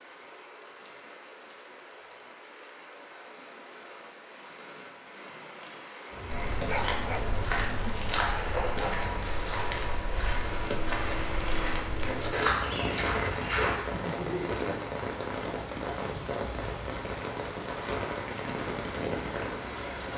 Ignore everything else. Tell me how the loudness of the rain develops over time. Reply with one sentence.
The volume of the rain goes up.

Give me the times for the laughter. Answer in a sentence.
The laughter can be heard from 13.9 to 14.7 s.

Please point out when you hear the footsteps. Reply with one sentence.
You can hear the footsteps from 6.2 to 13.8 s.